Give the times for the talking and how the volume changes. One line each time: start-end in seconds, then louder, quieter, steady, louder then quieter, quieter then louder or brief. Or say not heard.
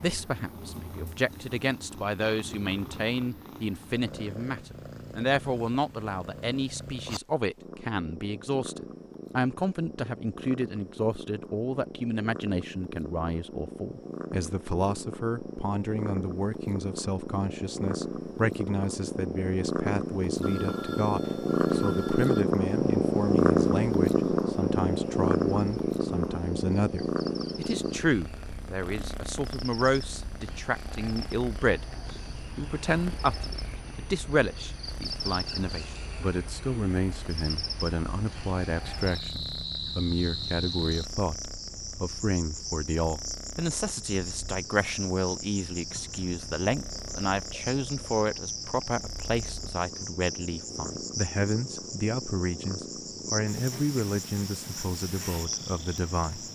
0.0-56.5 steady.